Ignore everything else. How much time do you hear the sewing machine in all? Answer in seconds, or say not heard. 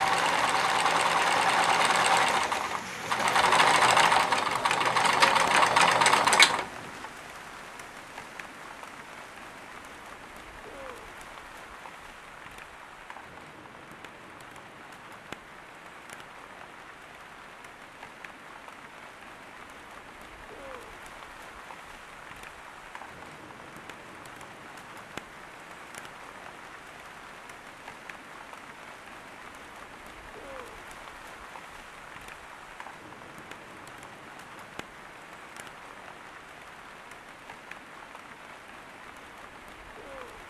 7 s.